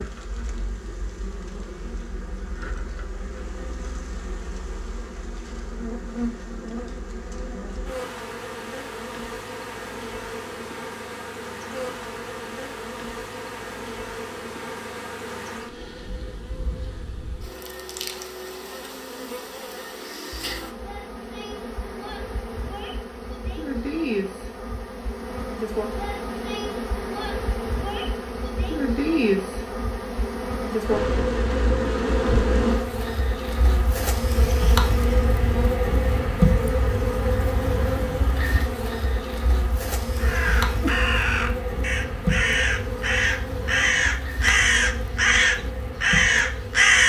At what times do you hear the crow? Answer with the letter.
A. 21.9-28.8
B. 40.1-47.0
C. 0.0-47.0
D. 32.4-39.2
B.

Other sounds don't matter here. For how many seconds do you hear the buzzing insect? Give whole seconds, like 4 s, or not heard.
47 s.